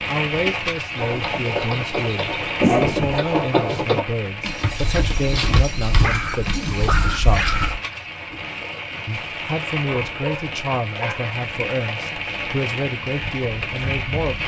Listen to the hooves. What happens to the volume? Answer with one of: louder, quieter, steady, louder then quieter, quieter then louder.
louder then quieter.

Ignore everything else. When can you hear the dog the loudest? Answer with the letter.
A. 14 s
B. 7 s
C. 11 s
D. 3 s
D.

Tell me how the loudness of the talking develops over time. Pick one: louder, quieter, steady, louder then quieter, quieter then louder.
steady.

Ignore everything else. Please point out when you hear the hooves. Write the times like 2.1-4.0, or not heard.
0.9-7.8.